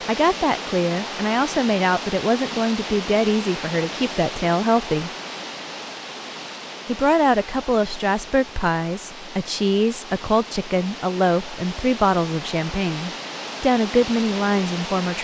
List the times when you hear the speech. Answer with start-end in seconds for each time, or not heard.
0.1-5.1, 6.8-15.2.